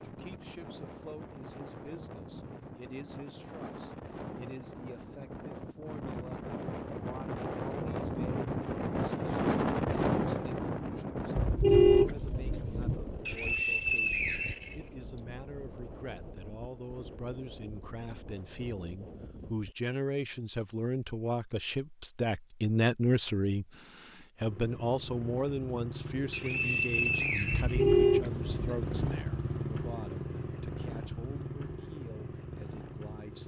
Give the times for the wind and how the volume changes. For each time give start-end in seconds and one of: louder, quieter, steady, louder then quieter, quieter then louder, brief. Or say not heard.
0.0-19.8 louder then quieter.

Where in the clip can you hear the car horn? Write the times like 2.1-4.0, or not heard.
11.3-13.0, 27.5-29.1.